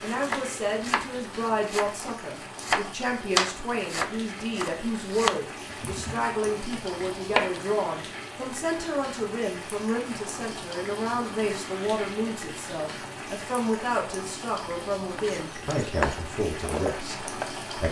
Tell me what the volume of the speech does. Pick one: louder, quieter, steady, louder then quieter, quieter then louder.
steady.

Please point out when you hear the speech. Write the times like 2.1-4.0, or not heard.
0.0-17.8.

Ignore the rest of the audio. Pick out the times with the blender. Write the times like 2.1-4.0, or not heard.
not heard.